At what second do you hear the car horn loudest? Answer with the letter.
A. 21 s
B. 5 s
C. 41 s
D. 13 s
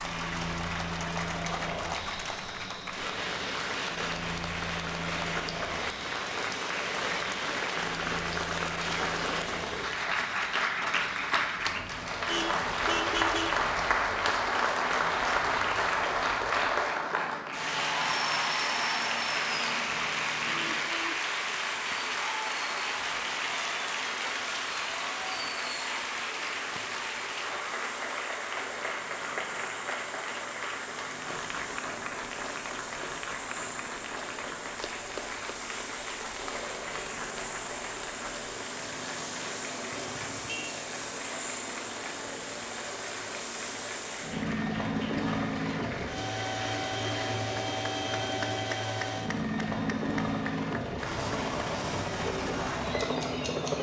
D.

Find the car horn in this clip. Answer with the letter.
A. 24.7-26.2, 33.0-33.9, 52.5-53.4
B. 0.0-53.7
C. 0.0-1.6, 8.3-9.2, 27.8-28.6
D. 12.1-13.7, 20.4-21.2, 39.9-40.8
D.